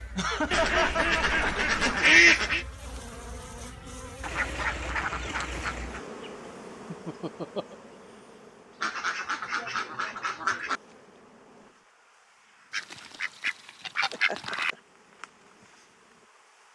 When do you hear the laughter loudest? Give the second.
1 s.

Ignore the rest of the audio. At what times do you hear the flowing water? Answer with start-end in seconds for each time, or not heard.
not heard.